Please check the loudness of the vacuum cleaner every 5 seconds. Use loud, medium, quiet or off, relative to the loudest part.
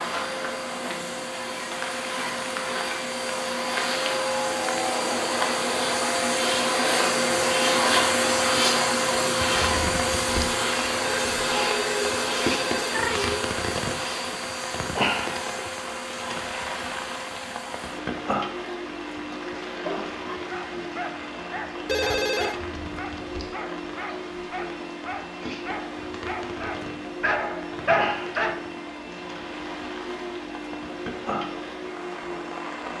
medium, loud, medium, quiet, quiet, quiet, quiet.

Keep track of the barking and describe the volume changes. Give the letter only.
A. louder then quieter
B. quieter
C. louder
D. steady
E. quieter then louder
C.